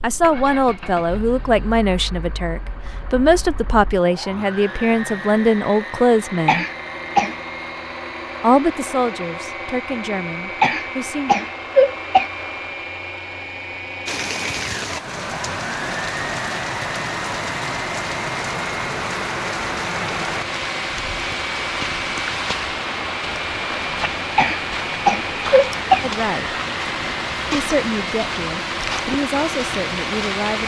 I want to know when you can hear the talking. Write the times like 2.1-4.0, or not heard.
0.0-6.7, 8.4-11.3, 26.0-26.5, 27.5-30.6.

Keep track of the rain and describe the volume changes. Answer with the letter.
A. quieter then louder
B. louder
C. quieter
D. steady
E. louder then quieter
D.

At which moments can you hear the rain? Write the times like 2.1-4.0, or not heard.
14.1-30.6.